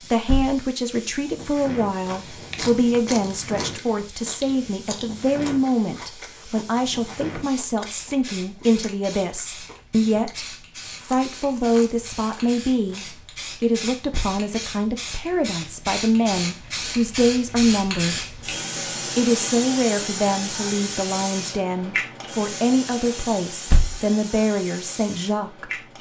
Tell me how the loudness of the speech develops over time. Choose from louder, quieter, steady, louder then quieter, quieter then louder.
steady.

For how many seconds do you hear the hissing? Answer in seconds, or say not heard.
26 s.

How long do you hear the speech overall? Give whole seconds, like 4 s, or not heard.
25 s.